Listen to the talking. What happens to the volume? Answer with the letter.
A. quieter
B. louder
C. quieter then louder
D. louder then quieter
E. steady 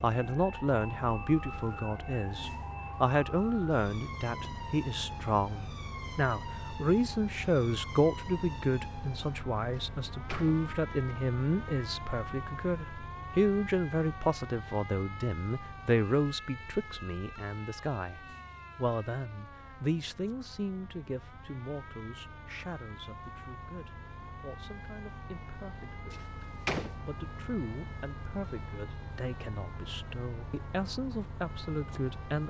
A.